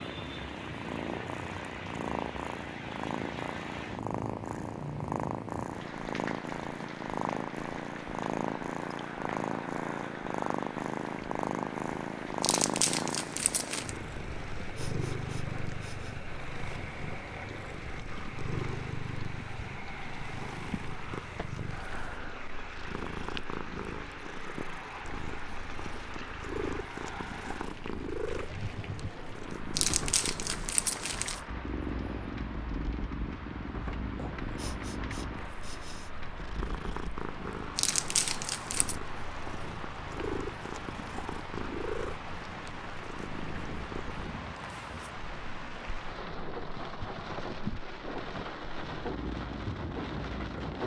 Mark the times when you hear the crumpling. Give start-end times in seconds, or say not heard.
12.4-13.9, 29.7-31.4, 37.8-39.0.